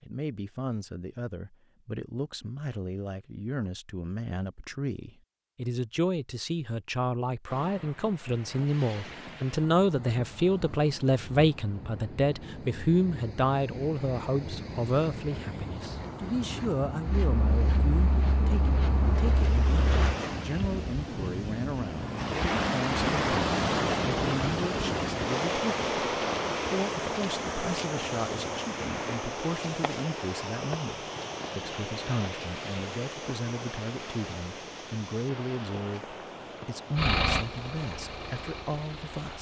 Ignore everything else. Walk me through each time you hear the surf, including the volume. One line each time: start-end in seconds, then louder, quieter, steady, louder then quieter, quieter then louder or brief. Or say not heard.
7.5-39.3 louder then quieter.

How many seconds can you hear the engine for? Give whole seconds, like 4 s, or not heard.
5 s.